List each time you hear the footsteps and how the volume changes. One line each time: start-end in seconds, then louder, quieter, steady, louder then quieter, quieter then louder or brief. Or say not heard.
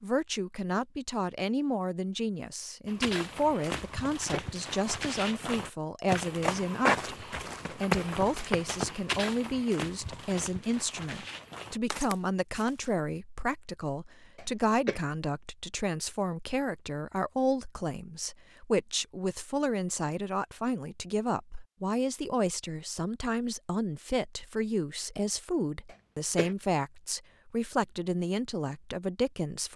2.9-12.9 louder then quieter.